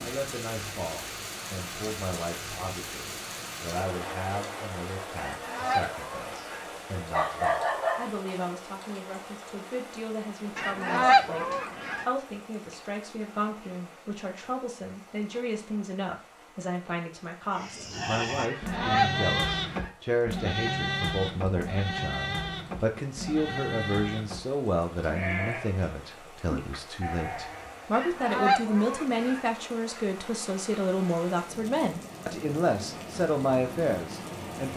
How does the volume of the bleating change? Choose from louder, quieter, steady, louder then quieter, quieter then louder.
quieter.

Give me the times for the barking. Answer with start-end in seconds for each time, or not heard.
7.1-8.1.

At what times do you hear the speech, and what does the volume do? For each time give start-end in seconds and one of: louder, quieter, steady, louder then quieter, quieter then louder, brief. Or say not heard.
0.0-34.7 louder.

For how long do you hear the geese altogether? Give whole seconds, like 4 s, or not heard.
6 s.